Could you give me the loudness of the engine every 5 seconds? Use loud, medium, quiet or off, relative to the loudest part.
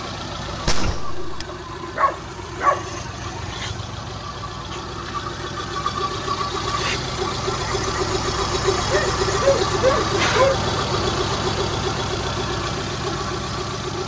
medium, loud, loud.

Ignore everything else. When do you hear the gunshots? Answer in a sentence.
You can hear the gunshots from 0.7 to 1.4 s.